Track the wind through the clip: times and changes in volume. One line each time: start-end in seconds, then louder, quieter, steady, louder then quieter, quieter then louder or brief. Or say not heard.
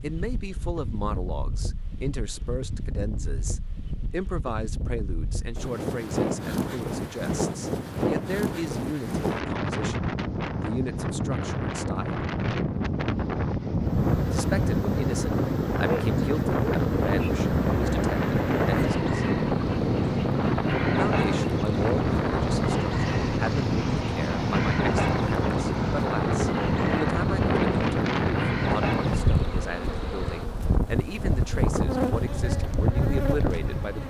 0.0-34.0 louder.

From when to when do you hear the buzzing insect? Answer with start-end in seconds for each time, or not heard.
13.8-34.0.